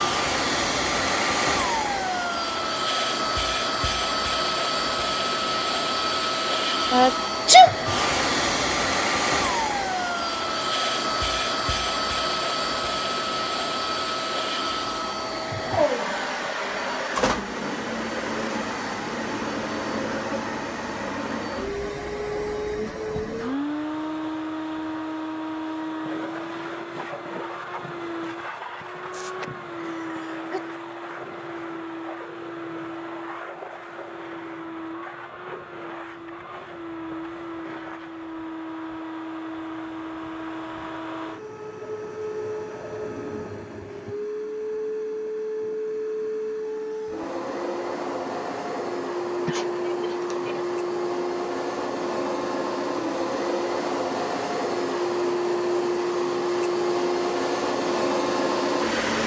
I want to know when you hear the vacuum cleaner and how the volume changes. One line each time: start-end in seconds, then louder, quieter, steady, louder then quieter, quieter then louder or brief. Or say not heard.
0.0-59.2 quieter then louder.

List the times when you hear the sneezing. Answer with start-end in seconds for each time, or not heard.
6.9-7.8, 29.1-30.6, 49.5-50.6.